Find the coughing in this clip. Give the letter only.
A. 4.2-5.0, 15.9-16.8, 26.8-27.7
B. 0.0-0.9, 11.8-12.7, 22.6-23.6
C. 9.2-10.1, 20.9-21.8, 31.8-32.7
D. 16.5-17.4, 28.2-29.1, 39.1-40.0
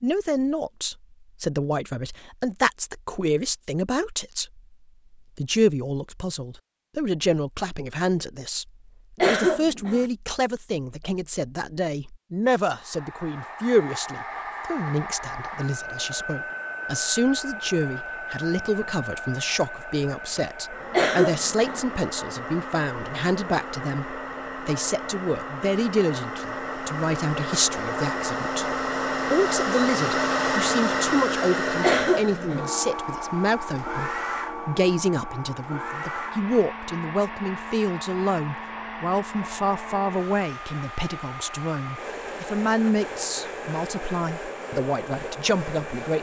C.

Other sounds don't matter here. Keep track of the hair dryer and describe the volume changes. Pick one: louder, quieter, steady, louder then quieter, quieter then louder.
louder then quieter.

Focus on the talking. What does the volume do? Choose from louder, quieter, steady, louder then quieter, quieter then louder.
steady.